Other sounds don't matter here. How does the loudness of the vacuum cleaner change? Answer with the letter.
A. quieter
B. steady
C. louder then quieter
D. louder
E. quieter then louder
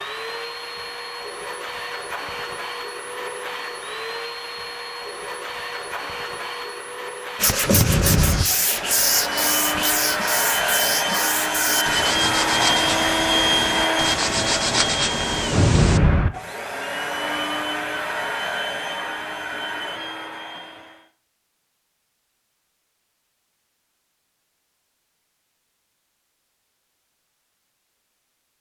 C.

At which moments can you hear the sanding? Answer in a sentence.
You can hear the sanding from 7.3 to 16.0 s.